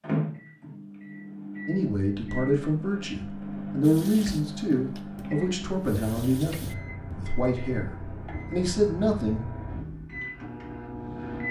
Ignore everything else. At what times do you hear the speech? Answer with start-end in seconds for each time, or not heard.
1.6-9.4.